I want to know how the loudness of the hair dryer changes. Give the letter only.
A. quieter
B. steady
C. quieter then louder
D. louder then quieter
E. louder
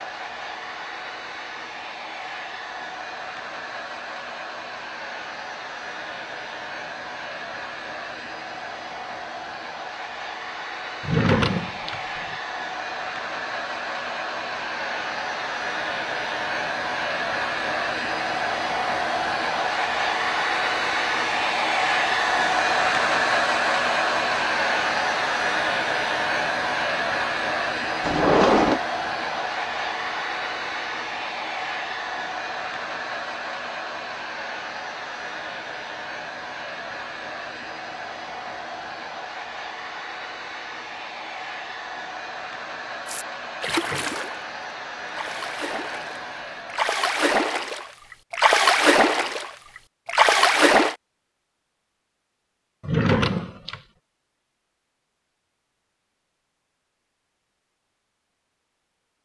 D.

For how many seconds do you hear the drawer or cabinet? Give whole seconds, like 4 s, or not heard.
3 s.